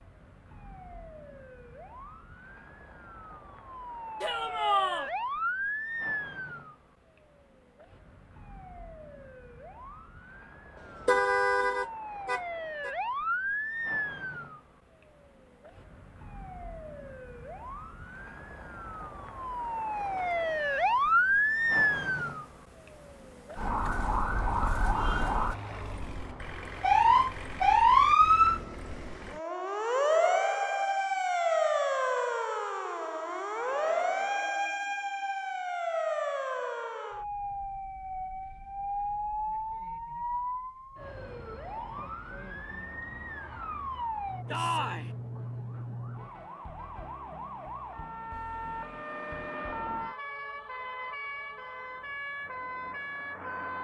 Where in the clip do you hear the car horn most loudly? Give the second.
11 s.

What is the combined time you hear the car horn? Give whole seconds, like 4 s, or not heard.
2 s.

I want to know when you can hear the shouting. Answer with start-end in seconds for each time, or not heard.
4.2-5.1, 33.5-34.3, 44.5-45.1.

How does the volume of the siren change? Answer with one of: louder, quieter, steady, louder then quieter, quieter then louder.
louder then quieter.